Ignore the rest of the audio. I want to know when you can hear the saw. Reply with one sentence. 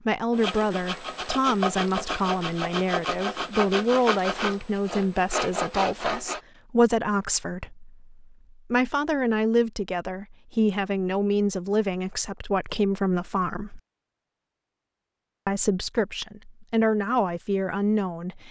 You can hear the saw from 0.3 to 6.4 s.